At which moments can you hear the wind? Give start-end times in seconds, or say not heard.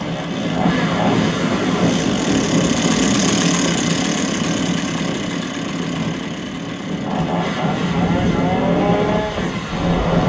0.0-10.2.